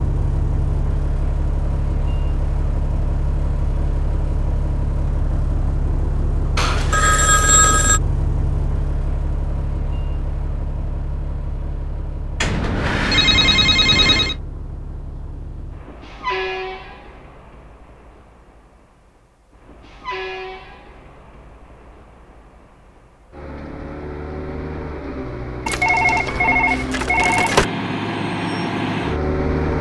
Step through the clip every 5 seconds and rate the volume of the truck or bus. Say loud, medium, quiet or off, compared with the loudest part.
loud, loud, medium, medium, medium, loud.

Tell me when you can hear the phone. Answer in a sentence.
You can hear the phone from 6.5 to 8.0 s, from 12.4 to 14.3 s and from 25.6 to 27.6 s.